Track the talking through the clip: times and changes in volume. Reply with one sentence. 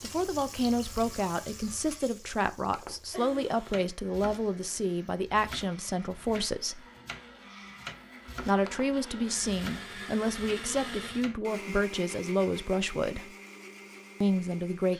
You can hear the talking from 0.0 to 6.8 s, at a steady volume; from 8.4 to 13.3 s, at a steady volume; and briefly from 14.2 to 14.9 s.